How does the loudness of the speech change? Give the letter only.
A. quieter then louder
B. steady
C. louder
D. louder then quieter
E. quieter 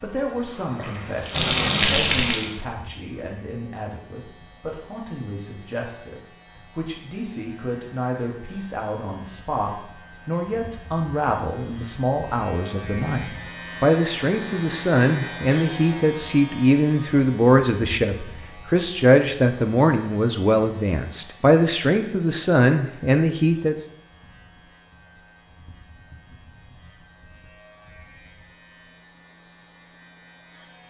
C.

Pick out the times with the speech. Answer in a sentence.
The speech can be heard from 0.0 to 23.9 s.